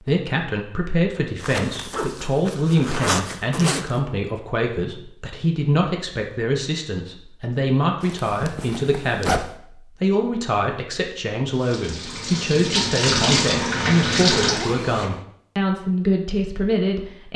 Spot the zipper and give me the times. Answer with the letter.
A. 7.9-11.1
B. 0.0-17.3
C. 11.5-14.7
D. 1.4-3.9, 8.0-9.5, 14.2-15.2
D.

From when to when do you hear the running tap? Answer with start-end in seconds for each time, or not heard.
11.5-14.7.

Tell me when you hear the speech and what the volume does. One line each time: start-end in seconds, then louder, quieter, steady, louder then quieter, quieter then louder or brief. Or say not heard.
0.0-17.3 steady.